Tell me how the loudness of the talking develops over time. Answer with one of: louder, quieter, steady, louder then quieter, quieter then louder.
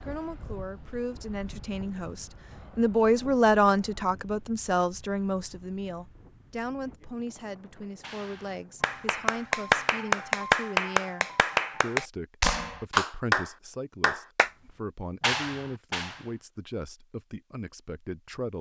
quieter.